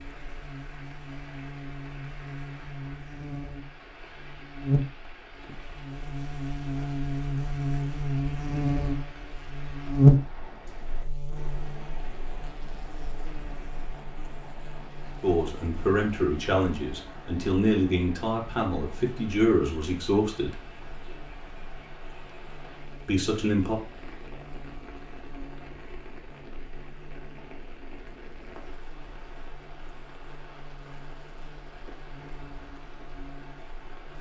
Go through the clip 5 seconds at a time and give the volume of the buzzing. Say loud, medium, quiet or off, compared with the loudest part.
medium, medium, loud, quiet, quiet, quiet, quiet.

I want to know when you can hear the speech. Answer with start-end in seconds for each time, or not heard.
15.2-20.6, 23.1-23.8.